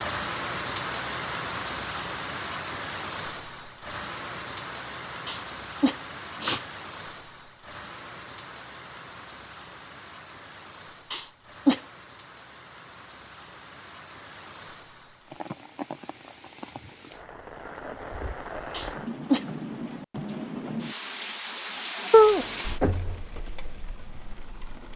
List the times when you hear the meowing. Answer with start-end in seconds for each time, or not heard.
22.1-23.1.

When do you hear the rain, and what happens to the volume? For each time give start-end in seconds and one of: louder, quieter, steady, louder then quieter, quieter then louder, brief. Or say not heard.
0.0-24.9 quieter then louder.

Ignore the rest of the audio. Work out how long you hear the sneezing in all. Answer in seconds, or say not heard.
3 s.